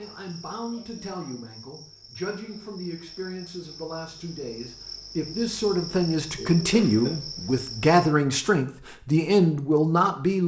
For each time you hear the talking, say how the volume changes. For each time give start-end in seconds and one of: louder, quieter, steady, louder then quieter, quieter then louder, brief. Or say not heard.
0.0-10.4 louder.